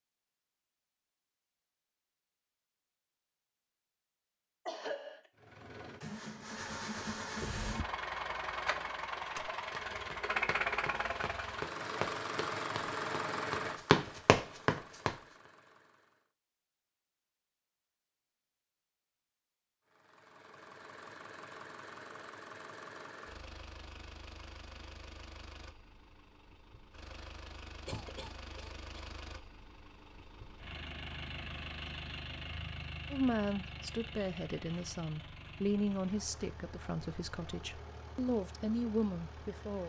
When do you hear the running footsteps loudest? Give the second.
14 s.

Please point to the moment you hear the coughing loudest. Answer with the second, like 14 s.
5 s.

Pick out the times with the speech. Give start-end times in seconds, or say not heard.
33.1-39.8.